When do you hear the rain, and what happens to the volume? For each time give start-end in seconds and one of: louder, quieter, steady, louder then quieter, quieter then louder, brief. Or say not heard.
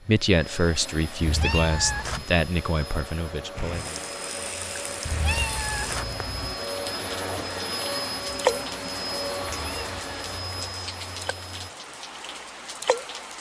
3.5-13.3 louder then quieter.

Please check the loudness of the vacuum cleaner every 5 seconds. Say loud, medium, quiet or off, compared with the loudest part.
medium, loud, medium.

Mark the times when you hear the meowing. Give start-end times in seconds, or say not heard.
1.2-2.2, 5.0-6.5, 9.4-10.6.